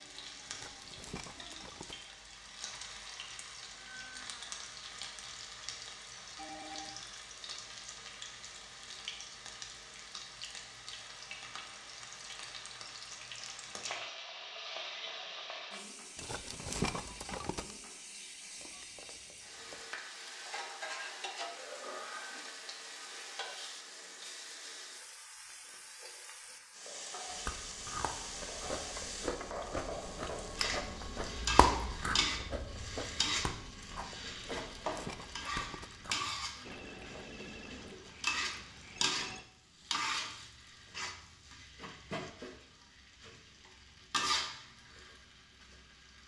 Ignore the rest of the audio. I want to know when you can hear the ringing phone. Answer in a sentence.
The ringing phone can be heard from 6.3 to 7.0 s, from 18.6 to 19.9 s and from 36.6 to 39.5 s.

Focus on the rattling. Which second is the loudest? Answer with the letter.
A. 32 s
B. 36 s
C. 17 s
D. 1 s
C.